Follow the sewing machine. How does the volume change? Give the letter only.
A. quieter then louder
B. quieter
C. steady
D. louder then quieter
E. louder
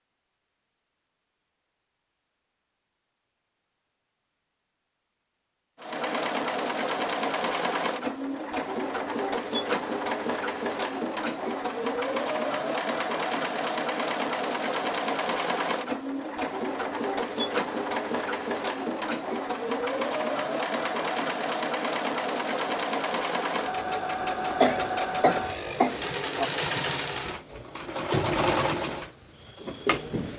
C.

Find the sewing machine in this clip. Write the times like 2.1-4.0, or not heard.
5.8-30.3.